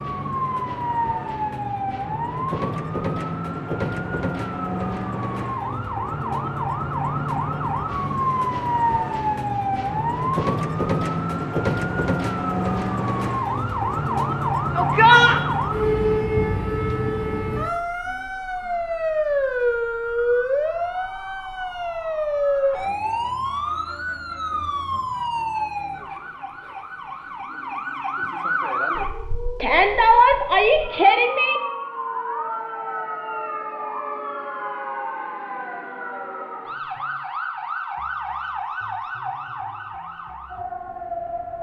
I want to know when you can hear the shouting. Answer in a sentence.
The shouting can be heard from 14.8 to 15.4 s and from 29.6 to 31.6 s.